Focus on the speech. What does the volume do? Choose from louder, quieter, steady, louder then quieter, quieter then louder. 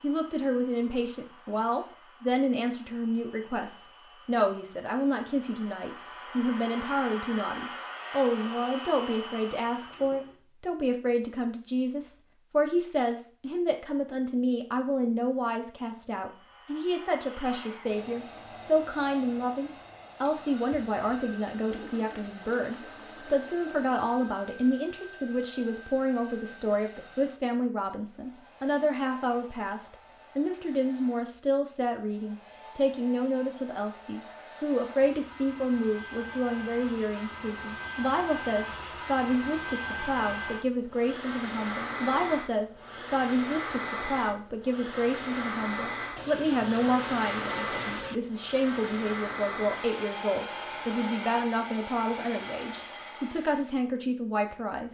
steady.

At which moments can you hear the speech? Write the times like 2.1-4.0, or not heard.
0.0-54.8.